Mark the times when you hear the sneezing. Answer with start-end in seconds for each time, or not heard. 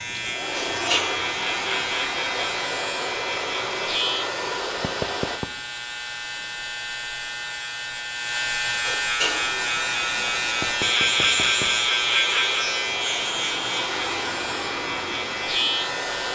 0.6-1.1, 8.8-9.8.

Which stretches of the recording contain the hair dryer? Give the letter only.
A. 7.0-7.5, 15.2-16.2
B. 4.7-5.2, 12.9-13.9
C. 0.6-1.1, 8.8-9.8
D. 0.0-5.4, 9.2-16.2
D.